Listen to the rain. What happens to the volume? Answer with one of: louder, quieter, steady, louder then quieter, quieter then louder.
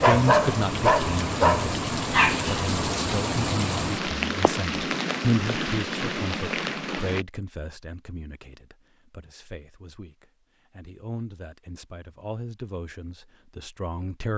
steady.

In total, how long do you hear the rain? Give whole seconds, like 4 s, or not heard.
7 s.